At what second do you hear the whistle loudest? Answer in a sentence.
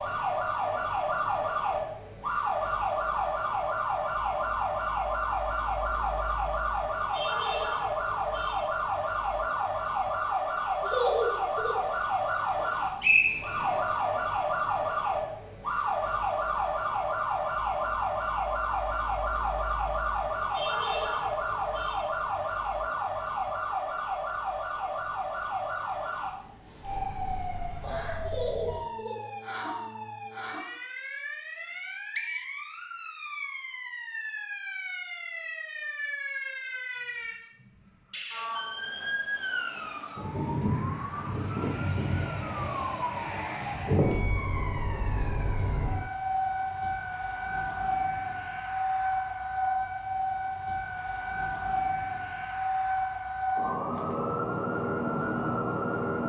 The volume of the whistle peaks at 13 seconds.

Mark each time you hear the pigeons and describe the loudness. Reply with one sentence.
The pigeons can't be heard in this clip.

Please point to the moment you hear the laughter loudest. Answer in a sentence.
The loudest moment of the laughter is at 11 seconds.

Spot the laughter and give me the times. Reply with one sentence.
You can hear the laughter from 10.8 to 11.9 s and from 28.2 to 29.3 s.